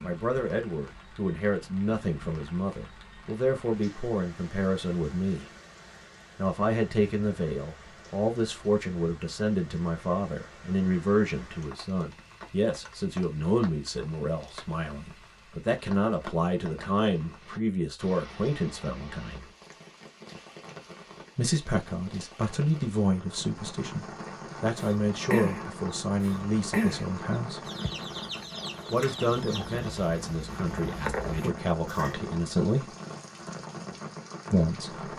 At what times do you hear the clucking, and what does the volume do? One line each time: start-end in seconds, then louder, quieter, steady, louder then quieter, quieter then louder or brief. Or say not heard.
24.8-32.1 quieter then louder.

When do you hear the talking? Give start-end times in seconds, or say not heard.
0.0-5.5, 6.3-19.5, 21.4-27.6, 28.9-32.9, 34.5-35.1.